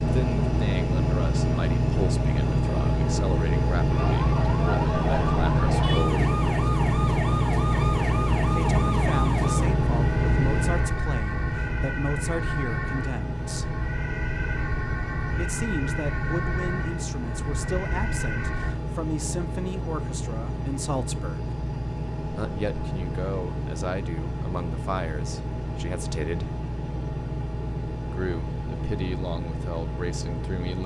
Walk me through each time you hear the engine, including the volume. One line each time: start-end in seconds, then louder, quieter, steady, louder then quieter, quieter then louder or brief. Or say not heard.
0.0-30.8 quieter.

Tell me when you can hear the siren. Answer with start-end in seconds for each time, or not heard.
3.9-18.8.